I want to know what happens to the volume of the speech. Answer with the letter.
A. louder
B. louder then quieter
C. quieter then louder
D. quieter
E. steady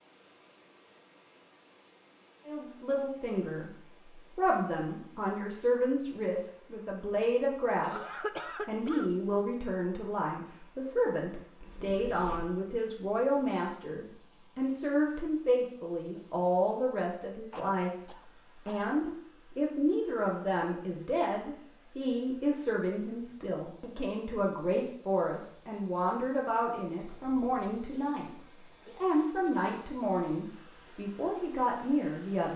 E.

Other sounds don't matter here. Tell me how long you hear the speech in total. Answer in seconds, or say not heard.
30 s.